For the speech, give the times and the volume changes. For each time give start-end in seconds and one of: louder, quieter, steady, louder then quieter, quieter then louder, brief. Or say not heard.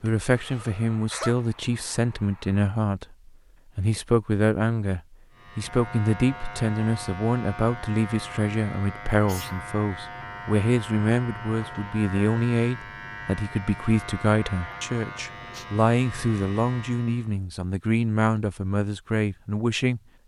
0.0-20.0 steady.